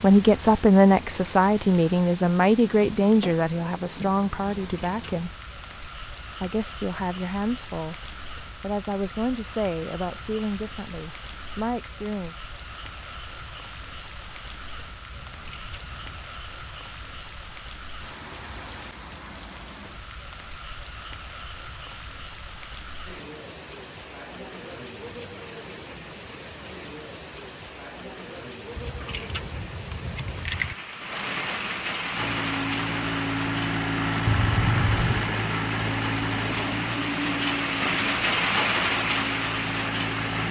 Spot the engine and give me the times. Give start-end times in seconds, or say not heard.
32.1-40.4.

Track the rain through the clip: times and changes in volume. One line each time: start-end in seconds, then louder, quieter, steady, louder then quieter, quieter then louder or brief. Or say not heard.
0.0-40.4 louder.